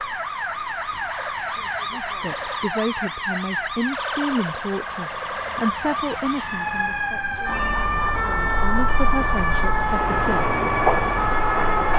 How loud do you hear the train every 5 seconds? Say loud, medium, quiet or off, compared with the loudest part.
off, medium, loud.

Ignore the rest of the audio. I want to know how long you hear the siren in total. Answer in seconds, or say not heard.
12 s.